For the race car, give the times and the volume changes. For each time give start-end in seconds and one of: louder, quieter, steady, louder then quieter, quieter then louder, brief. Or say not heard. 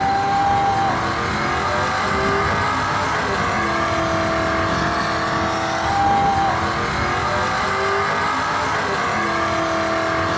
0.0-10.3 steady.